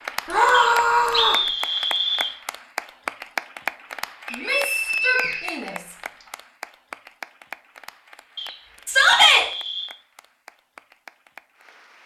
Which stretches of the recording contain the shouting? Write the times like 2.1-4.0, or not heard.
0.2-1.4, 4.3-5.9, 8.8-9.4.